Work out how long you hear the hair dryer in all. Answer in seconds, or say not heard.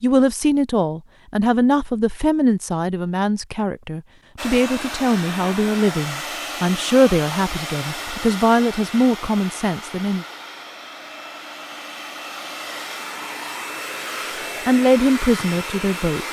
12 s.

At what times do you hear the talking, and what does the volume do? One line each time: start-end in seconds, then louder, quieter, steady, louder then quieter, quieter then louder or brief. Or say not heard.
0.0-10.2 steady
14.7-16.2 brief.